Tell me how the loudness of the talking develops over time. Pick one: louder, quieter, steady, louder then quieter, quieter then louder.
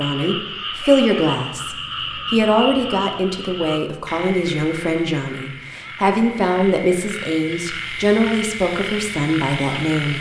steady.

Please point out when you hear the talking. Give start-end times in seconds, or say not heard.
0.0-10.1.